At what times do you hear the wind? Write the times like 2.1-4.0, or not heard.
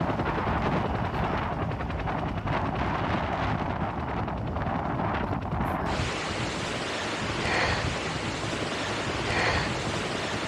0.0-10.4.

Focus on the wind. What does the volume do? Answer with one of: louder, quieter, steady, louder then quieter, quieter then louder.
steady.